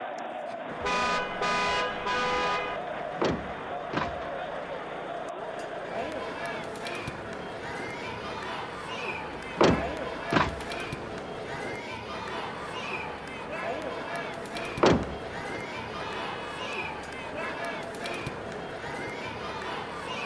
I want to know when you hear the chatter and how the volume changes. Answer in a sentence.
You can hear the chatter from 0.0 to 20.2 s, at a steady volume.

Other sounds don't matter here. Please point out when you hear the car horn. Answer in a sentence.
You can hear the car horn from 0.8 to 2.8 s and from 16.1 to 16.7 s.